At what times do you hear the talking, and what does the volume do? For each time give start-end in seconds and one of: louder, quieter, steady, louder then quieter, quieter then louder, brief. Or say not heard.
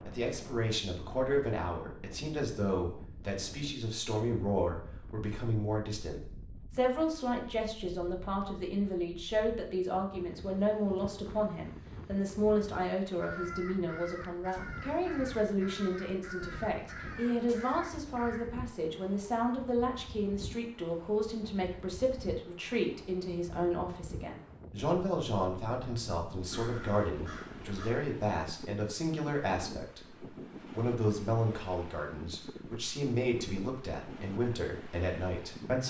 0.0-35.8 steady.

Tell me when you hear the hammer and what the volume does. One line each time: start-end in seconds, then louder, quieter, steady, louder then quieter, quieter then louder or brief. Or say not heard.
not heard.